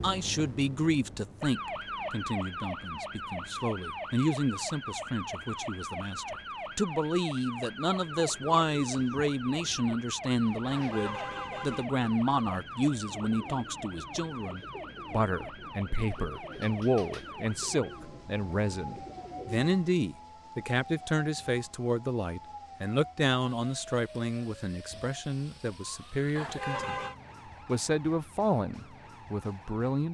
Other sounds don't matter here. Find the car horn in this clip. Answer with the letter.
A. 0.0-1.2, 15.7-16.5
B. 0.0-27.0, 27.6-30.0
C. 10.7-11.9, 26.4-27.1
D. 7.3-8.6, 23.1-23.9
C.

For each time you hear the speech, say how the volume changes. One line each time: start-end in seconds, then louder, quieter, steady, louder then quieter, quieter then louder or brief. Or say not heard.
0.0-27.0 steady
27.6-30.0 brief.